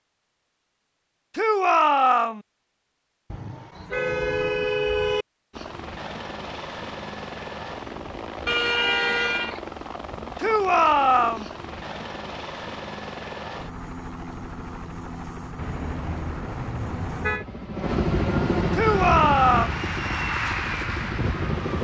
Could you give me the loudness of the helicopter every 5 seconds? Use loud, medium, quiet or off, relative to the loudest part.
off, medium, medium, loud, loud.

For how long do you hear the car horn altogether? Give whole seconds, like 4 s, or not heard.
5 s.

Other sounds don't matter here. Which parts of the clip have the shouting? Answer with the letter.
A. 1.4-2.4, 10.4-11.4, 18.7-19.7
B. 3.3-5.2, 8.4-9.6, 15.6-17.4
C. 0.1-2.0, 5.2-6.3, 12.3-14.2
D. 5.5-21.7
A.